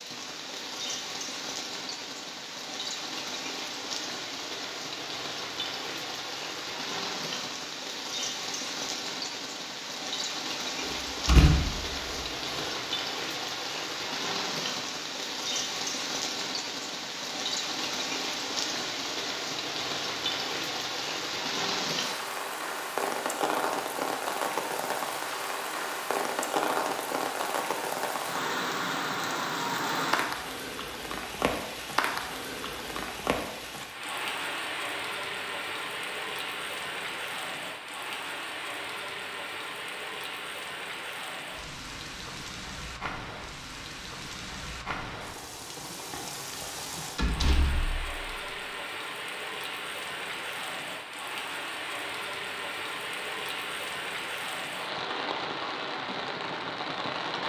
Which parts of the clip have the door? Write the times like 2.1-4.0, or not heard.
10.8-12.7, 47.1-48.2.